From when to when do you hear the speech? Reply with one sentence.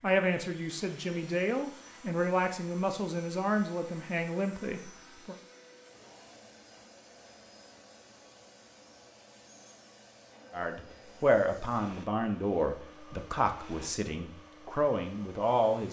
You can hear the speech from 0.0 to 5.3 s and from 10.5 to 15.8 s.